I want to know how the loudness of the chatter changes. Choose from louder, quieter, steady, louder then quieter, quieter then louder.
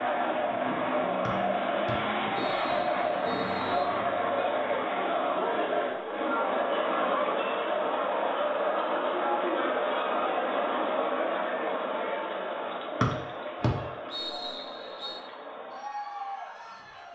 quieter.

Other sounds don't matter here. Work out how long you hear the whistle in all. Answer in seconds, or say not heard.
5 s.